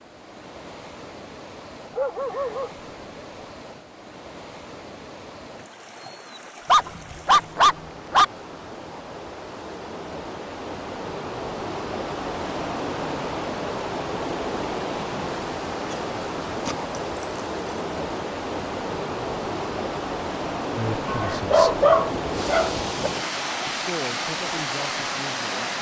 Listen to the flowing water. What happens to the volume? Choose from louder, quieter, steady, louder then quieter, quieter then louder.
louder.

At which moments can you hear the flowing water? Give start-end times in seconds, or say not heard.
0.0-25.7.